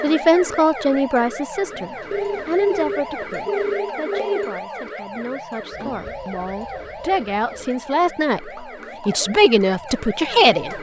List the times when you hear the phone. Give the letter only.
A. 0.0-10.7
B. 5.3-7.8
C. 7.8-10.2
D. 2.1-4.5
D.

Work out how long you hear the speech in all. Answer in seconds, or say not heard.
11 s.